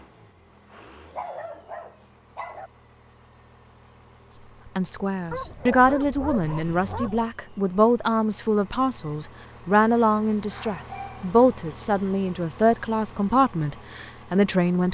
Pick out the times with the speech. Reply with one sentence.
You can hear the speech from 4.8 to 14.8 s.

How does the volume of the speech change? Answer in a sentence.
The loudness of the speech stays about the same.